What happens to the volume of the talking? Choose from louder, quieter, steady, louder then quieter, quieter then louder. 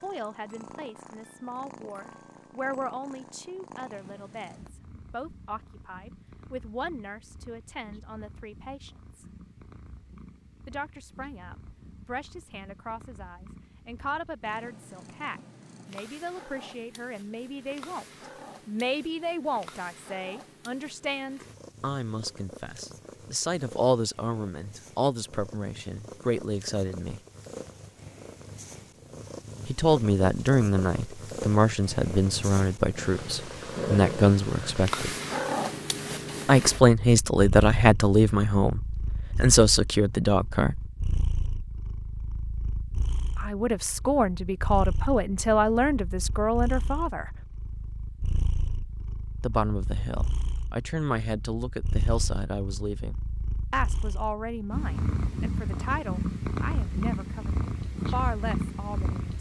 louder then quieter.